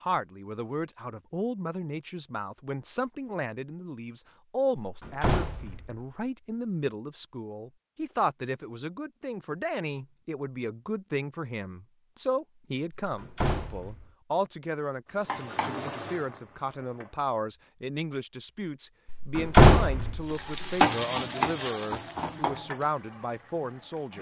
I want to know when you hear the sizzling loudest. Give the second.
21 s.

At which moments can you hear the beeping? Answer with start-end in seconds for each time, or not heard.
not heard.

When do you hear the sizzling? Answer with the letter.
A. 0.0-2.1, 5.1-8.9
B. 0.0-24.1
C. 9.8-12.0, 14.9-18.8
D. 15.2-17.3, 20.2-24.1
D.